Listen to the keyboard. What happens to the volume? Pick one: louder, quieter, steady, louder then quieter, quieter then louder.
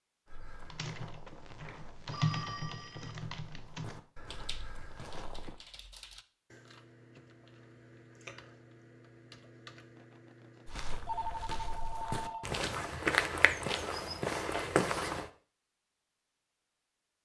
quieter.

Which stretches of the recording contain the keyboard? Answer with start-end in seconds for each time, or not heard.
0.6-10.9.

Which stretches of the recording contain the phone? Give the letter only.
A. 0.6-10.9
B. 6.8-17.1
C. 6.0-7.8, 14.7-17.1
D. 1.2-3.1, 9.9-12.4
D.